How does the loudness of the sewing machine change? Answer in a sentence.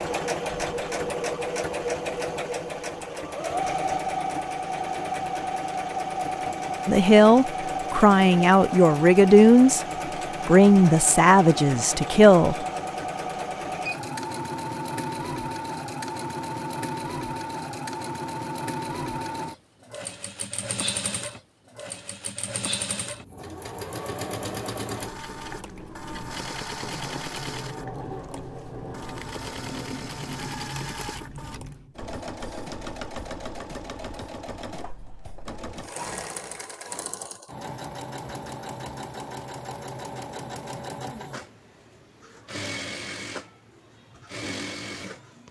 The volume of the sewing machine goes down.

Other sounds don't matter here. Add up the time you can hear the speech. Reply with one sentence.
You can hear the speech for 5 seconds altogether.